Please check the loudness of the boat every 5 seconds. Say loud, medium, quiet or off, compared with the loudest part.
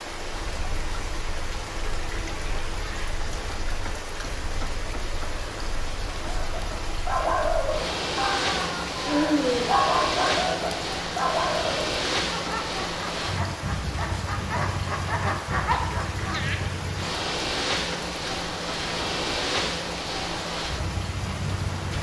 quiet, loud, loud, loud, loud.